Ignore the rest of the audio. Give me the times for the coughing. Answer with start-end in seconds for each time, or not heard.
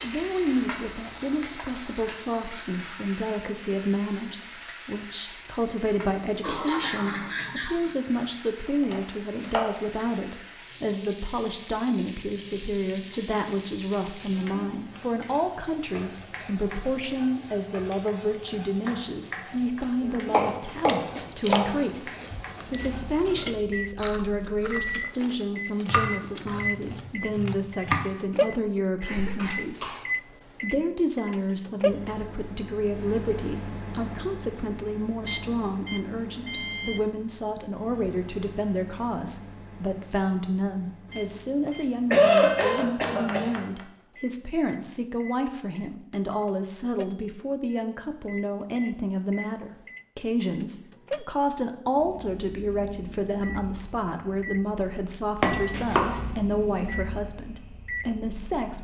6.0-7.9, 29.0-30.0, 41.6-43.5.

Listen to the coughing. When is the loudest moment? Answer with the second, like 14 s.
42 s.